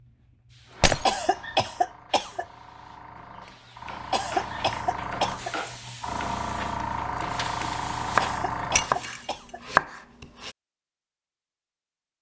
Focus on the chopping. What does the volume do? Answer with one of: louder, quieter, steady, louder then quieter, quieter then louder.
louder.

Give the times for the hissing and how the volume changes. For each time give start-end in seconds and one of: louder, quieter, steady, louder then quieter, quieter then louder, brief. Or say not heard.
0.0-9.4 louder.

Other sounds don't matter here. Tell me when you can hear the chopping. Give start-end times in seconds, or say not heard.
3.1-10.5.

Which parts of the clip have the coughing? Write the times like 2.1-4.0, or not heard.
1.1-2.5, 4.1-5.5, 8.2-9.6.